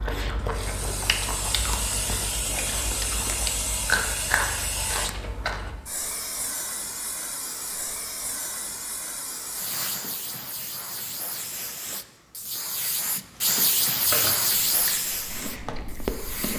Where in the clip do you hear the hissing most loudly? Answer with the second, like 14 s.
14 s.